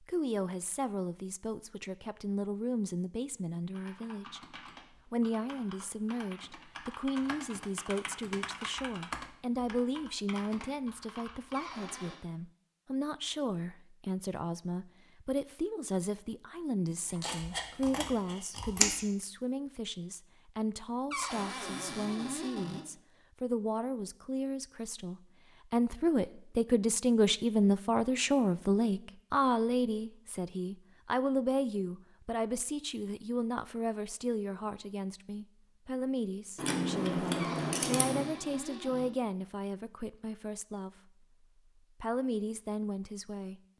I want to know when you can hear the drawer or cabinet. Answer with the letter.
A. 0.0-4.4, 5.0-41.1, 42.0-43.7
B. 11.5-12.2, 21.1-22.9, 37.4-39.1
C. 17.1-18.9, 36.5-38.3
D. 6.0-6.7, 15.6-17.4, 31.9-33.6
B.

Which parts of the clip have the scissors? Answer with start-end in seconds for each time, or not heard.
17.1-18.9, 36.5-38.3.